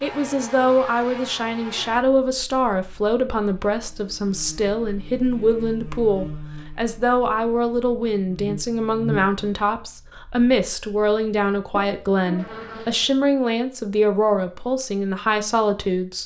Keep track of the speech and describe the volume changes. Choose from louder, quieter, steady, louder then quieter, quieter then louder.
steady.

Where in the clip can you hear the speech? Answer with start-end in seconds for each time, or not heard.
0.0-16.2.